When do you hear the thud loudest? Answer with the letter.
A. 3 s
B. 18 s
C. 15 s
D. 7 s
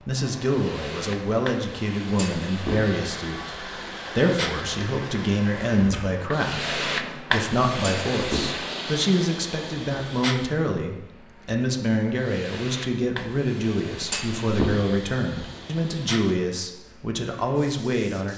C.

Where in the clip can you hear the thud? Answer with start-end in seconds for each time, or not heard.
2.1-3.0, 7.8-8.5, 14.0-15.0.